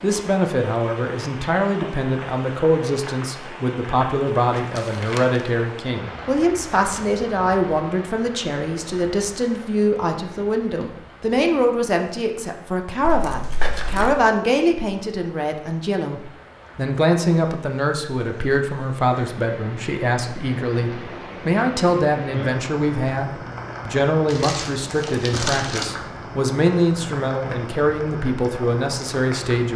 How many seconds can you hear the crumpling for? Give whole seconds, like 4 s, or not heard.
4 s.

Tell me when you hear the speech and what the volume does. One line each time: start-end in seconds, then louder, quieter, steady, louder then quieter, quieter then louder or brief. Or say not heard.
0.0-29.7 steady.